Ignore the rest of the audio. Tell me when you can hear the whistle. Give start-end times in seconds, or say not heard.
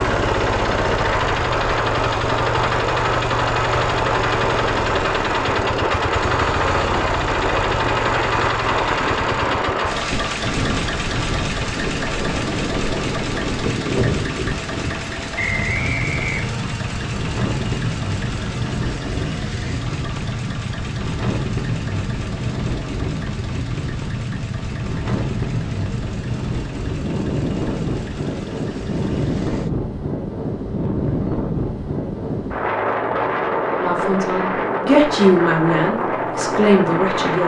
15.3-16.6.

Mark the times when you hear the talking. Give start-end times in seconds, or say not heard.
33.7-37.4.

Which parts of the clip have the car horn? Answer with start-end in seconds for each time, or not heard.
not heard.